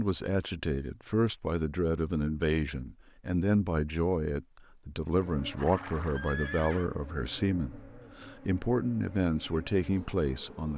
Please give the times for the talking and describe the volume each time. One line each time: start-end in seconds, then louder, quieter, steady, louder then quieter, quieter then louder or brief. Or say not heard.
0.0-10.7 steady.